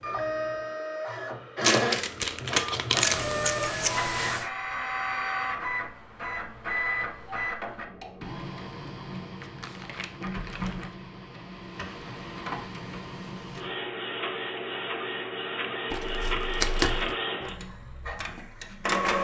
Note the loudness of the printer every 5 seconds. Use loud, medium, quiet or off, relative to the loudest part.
loud, loud, medium, loud.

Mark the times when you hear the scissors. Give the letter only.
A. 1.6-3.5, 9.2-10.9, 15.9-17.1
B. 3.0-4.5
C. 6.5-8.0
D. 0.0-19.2
B.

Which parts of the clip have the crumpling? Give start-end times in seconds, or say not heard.
1.6-3.5, 9.2-10.9, 15.9-17.1.